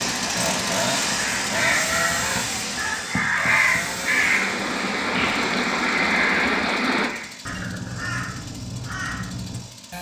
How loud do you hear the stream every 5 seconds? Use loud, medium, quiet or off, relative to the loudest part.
medium, loud.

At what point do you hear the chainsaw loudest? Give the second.
1 s.